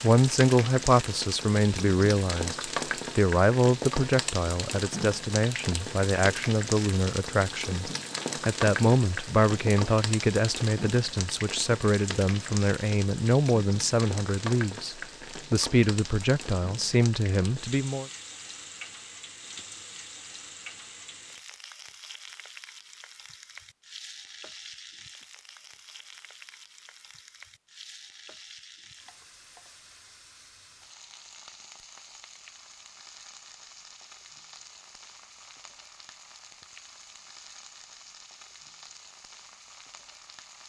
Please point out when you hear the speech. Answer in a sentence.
The speech can be heard from 0.0 to 18.1 s.